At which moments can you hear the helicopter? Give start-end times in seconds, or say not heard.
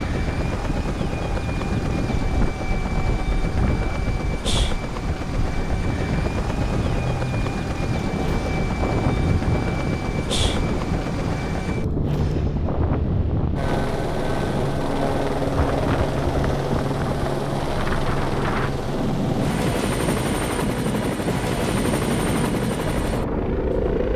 0.0-24.1.